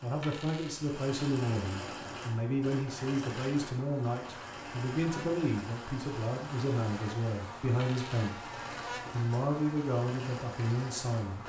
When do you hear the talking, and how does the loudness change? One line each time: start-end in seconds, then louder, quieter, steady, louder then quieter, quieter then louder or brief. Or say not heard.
0.0-8.4 steady
9.1-11.4 brief.